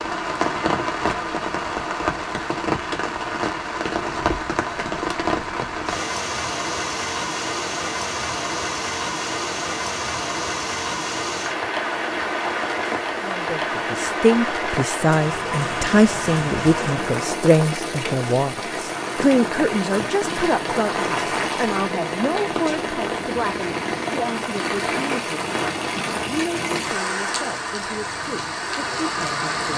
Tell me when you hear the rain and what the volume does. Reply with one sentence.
The rain can be heard from 0.0 to 29.7 s, at a steady volume.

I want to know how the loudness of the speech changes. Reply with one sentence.
The loudness of the speech goes down.